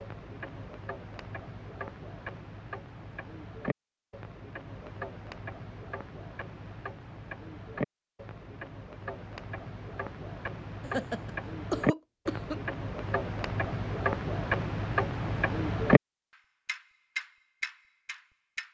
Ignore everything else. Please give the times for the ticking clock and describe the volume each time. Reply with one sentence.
You can hear the ticking clock from 0.0 to 16.0 s, getting louder; and briefly from 16.6 to 18.6 s.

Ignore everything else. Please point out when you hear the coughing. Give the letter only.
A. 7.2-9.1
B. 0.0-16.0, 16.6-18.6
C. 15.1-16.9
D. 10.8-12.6
D.